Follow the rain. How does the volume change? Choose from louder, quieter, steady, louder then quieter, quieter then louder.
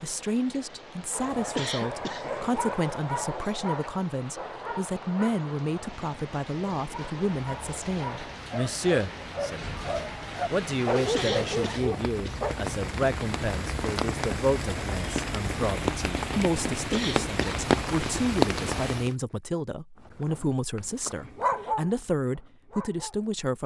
louder.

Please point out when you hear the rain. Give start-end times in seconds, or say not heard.
0.0-19.1.